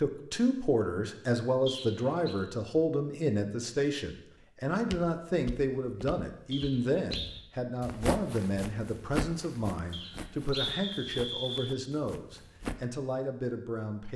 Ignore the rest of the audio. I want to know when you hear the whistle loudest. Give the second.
11 s.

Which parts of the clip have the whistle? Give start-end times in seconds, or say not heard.
1.6-2.4, 6.5-7.3, 9.9-11.8.